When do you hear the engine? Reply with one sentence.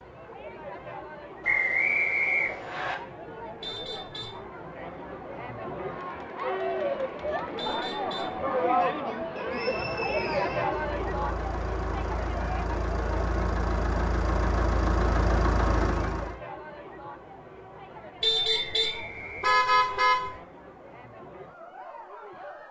You can hear the engine from 10.7 to 16.4 s.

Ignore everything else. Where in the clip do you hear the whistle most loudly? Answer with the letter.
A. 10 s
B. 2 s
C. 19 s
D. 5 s
B.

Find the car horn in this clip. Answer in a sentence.
You can hear the car horn from 3.6 to 4.4 s, from 7.5 to 8.9 s and from 18.2 to 20.4 s.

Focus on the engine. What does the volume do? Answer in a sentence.
The volume of the engine goes up.